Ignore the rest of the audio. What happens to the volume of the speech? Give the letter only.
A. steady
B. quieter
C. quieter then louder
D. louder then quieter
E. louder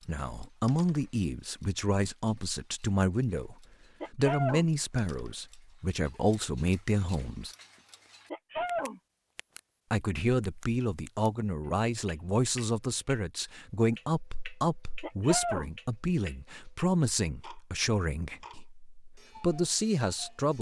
A.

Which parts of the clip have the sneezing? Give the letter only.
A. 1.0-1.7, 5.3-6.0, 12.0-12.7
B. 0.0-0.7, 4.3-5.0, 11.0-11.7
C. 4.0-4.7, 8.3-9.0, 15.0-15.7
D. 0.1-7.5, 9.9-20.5
C.